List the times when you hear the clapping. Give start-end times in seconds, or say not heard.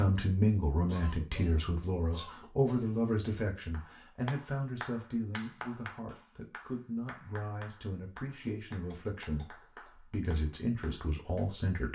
3.7-11.5.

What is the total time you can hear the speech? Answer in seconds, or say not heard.
12 s.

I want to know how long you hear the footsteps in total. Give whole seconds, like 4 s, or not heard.
not heard.